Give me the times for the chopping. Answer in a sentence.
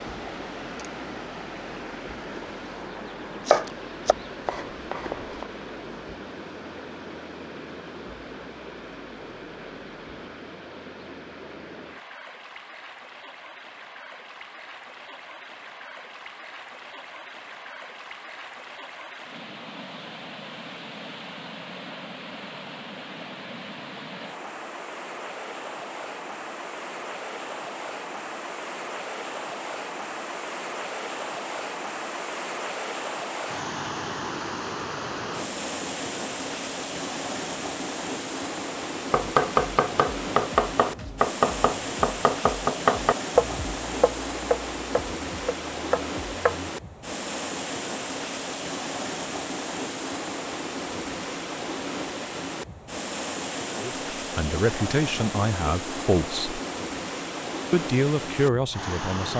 The chopping can be heard from 3.5 to 5.5 s and from 39.1 to 46.7 s.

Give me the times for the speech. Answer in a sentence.
The speech can be heard from 53.8 to 56.6 s and from 57.7 to 59.3 s.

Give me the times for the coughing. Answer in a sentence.
You can't hear the coughing here.